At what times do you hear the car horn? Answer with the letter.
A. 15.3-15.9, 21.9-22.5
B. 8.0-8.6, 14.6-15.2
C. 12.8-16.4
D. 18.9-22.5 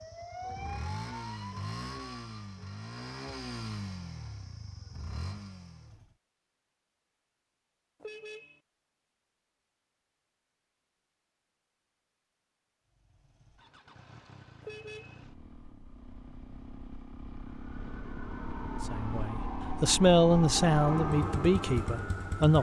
B.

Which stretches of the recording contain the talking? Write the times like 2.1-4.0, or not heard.
18.9-22.5.